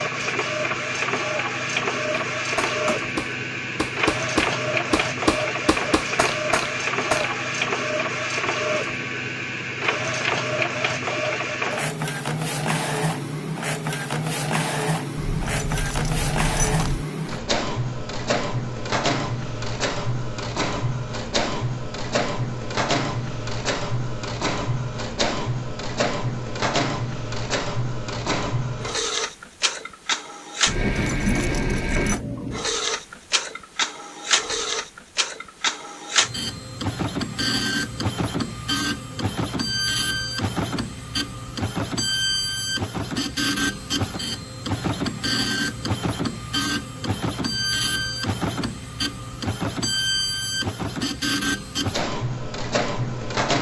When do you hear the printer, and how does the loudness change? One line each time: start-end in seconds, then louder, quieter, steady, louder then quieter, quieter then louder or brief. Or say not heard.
0.0-53.5 steady.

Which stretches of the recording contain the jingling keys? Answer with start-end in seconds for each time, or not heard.
15.2-17.1, 30.6-32.2.